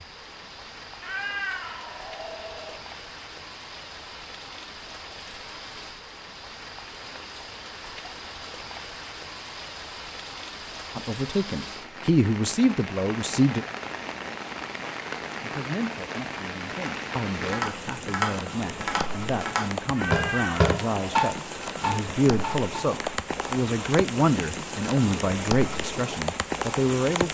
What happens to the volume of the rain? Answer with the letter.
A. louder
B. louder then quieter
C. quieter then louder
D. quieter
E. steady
A.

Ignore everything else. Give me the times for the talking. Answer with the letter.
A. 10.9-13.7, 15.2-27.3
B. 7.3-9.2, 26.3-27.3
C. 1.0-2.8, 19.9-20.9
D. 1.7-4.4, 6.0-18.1
A.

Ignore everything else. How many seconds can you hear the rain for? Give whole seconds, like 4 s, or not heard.
27 s.